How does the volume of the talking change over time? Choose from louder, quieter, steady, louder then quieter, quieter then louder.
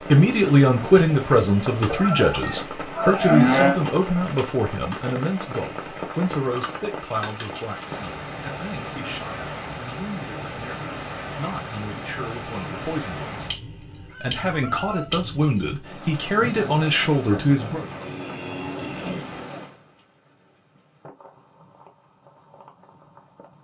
quieter then louder.